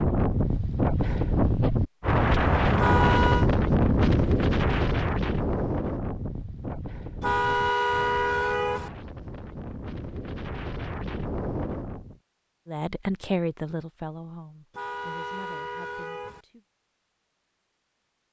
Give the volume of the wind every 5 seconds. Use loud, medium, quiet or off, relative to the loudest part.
loud, medium, medium, off.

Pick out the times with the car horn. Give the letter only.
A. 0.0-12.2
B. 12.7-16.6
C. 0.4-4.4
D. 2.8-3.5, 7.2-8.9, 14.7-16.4
D.